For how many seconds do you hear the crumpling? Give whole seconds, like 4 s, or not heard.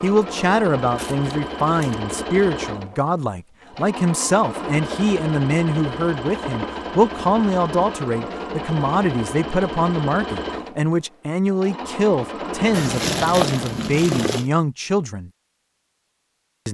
3 s.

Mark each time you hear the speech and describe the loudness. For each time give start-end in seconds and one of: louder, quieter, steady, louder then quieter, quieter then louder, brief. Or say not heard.
0.0-15.3 steady.